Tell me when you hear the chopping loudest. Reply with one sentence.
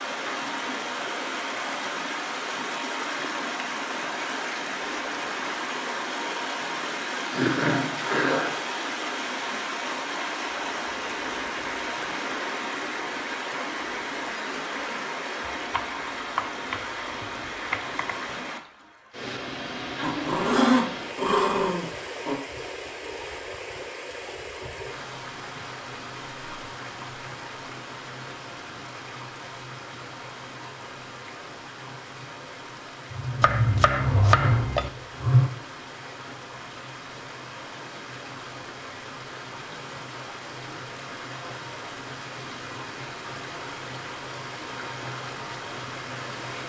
The volume of the chopping peaks at 34 seconds.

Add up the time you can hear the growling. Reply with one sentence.
You can hear the growling for 6 seconds altogether.